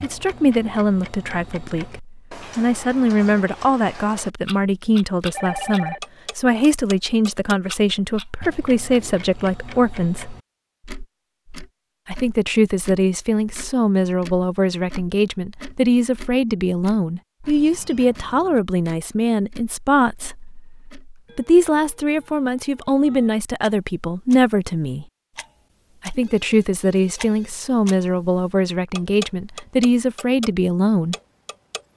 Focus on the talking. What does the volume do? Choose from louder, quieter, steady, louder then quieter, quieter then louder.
steady.